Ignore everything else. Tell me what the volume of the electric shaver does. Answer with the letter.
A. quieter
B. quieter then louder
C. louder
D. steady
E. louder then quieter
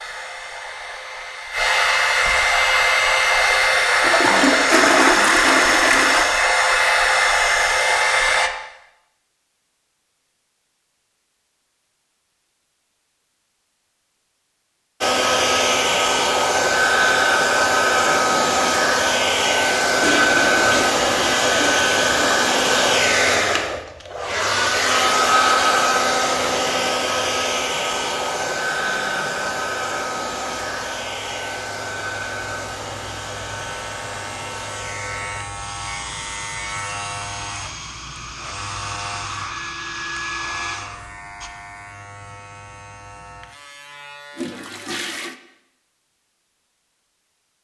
E.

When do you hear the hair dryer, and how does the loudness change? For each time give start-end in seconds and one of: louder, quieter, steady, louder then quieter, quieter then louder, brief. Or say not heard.
0.0-8.5 louder
15.0-41.5 quieter.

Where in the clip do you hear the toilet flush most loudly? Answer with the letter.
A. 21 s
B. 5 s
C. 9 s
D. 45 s
B.